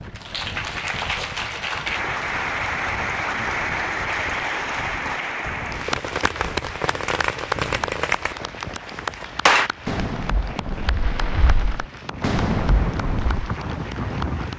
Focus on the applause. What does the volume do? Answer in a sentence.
The loudness of the applause goes down.